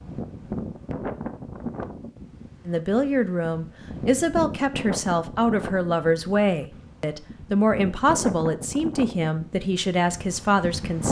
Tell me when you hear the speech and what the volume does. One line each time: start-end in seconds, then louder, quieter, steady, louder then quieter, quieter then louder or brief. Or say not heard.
2.6-11.0 steady.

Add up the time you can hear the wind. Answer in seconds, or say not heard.
11 s.